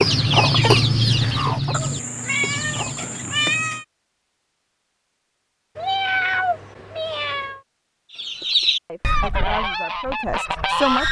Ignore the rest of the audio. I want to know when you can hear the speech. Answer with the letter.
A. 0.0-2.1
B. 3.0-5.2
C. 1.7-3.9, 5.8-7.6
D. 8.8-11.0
D.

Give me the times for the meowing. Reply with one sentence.
You can hear the meowing from 1.7 to 3.9 s and from 5.8 to 7.6 s.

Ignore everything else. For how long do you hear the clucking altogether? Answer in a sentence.
The clucking can be heard for 6 seconds in total.